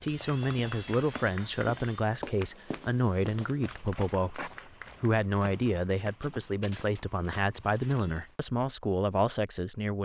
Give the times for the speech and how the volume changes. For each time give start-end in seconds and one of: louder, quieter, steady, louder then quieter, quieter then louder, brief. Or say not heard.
0.0-10.0 steady.